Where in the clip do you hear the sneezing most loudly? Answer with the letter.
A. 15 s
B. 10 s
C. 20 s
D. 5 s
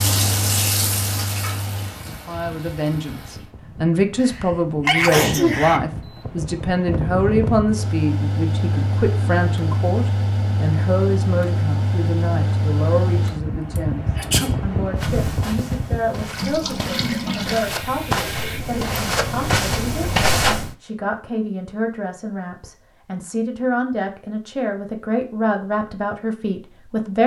D.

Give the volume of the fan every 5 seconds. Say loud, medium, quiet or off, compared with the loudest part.
medium, loud, loud, loud, off, off.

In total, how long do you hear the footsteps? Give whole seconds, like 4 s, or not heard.
6 s.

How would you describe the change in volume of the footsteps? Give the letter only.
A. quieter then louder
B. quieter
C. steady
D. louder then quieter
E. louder
E.